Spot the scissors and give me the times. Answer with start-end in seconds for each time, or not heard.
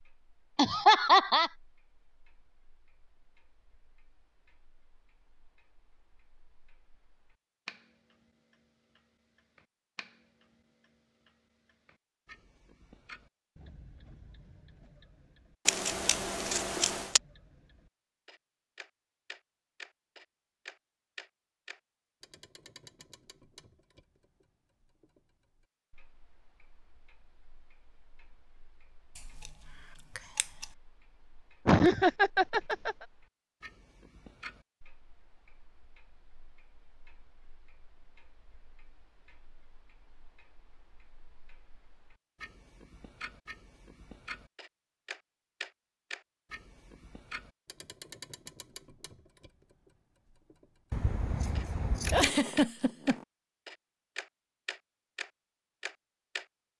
15.7-17.2, 29.1-30.6, 50.9-52.3.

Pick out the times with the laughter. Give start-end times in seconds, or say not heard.
0.6-1.5, 31.6-33.0, 52.1-53.2.